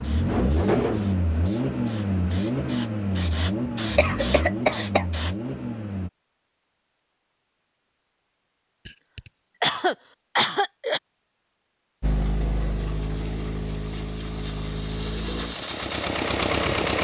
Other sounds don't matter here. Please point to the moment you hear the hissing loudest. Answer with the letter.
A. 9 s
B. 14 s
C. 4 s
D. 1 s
C.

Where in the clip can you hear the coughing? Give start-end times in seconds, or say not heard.
4.0-5.0, 8.8-11.0.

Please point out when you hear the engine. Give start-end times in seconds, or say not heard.
0.0-6.1, 12.0-17.0.